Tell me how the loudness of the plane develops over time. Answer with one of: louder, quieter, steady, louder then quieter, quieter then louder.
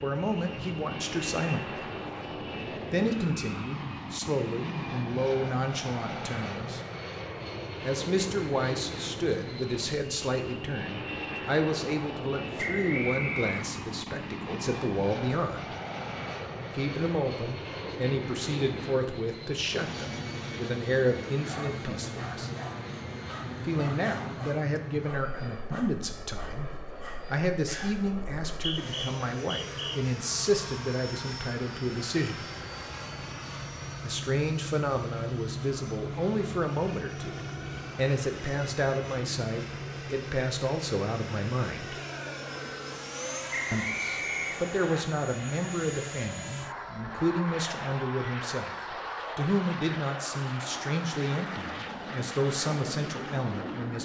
steady.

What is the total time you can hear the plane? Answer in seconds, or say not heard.
54 s.